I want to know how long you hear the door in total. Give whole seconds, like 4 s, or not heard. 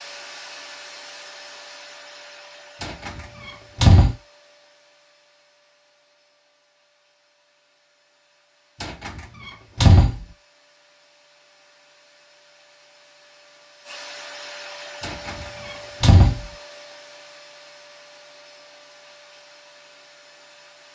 4 s.